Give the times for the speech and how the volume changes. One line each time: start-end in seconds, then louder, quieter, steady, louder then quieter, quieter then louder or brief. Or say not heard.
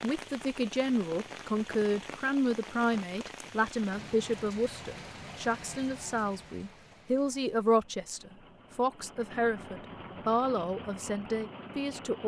0.0-12.2 steady.